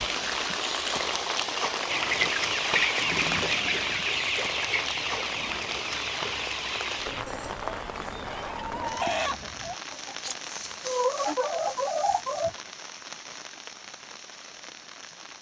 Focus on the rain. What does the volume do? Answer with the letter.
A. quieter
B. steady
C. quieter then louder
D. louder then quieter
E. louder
A.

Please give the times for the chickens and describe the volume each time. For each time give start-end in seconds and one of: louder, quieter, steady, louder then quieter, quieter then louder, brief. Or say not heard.
1.9-12.6 quieter then louder.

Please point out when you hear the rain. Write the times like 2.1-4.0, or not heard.
0.0-15.3.